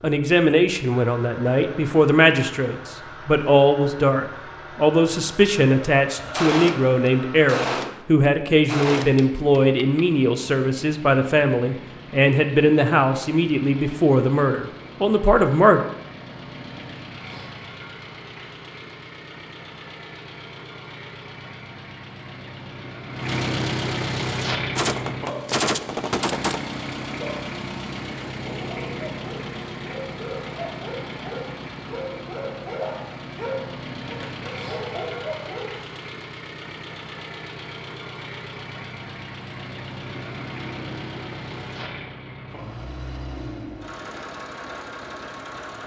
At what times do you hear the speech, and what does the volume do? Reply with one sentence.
The speech can be heard from 0.0 to 15.8 s, at a steady volume.